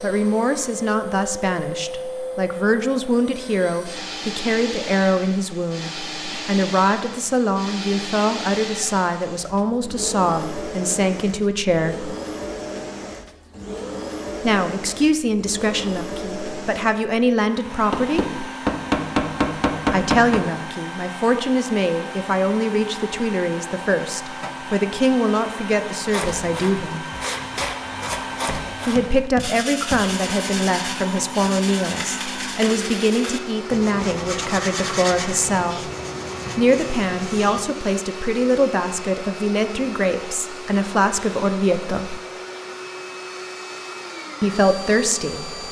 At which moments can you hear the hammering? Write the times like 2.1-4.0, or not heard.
17.9-20.4, 28.4-30.1.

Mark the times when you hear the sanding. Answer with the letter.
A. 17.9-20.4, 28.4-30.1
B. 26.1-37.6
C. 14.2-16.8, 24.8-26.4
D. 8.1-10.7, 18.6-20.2
B.